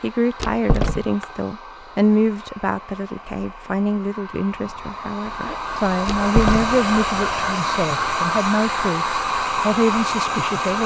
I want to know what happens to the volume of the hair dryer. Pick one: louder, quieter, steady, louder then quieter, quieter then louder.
louder.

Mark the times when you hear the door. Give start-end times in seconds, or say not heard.
0.4-1.2, 6.0-6.9.